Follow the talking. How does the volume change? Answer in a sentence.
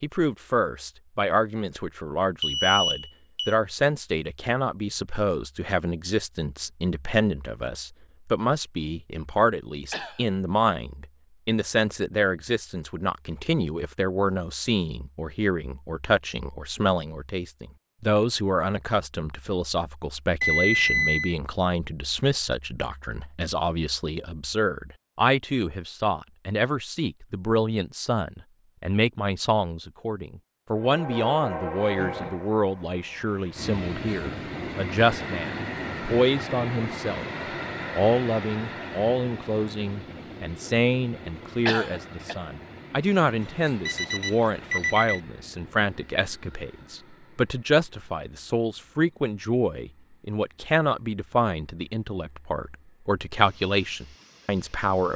The volume of the talking stays about the same.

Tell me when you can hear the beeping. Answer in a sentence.
You can hear the beeping from 2.4 to 3.5 s, from 20.4 to 21.4 s and from 43.4 to 45.2 s.